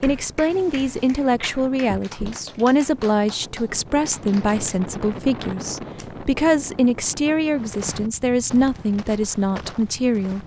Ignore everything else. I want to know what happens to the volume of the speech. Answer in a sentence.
The volume of the speech stays about the same.